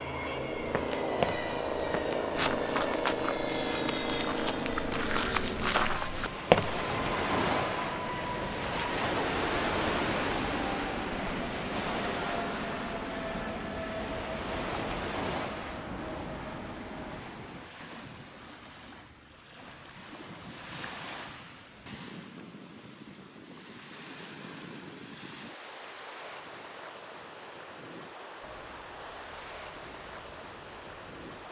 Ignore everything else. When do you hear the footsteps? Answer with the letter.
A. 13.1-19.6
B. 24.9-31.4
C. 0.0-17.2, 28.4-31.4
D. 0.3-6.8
D.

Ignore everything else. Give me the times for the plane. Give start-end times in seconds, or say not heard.
0.0-17.2, 28.4-31.4.